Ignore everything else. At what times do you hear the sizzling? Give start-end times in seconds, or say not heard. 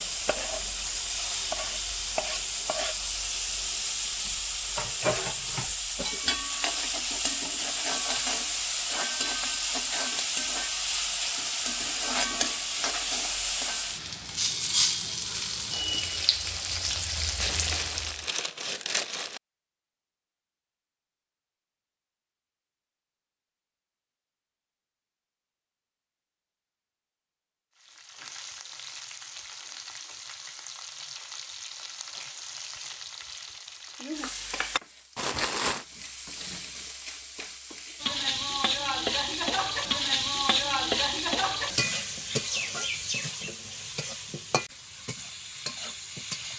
0.0-18.3, 27.8-46.5.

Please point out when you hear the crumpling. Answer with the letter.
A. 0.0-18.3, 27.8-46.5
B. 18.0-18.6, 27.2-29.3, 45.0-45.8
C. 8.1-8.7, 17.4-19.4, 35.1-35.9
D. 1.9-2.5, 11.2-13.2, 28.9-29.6
C.